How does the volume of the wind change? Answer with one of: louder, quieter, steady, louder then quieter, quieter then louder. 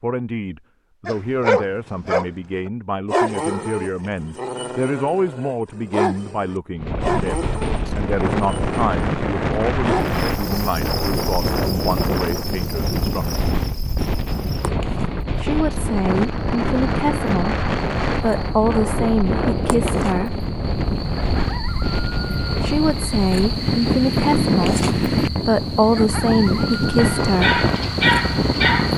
steady.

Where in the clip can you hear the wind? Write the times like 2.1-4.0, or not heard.
6.8-28.9.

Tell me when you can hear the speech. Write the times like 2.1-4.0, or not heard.
0.0-13.4, 15.3-20.4, 22.6-27.6.